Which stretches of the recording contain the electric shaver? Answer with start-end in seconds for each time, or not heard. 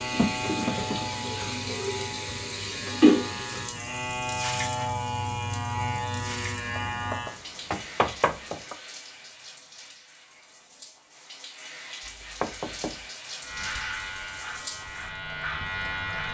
0.0-7.4, 13.4-16.2.